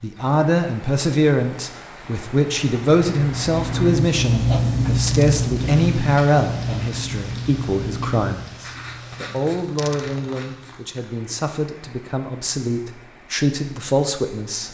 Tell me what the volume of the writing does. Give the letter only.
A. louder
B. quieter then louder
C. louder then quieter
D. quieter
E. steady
D.